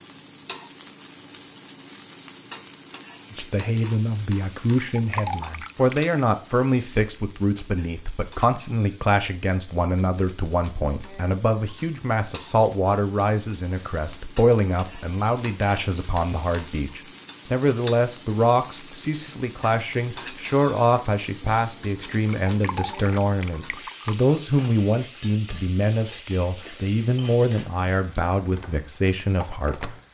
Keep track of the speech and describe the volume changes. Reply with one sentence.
The volume of the speech stays about the same.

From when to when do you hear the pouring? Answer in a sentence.
The pouring can be heard from 4.6 to 6.1 s and from 22.2 to 24.1 s.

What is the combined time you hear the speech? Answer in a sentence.
You can hear the speech for 27 seconds altogether.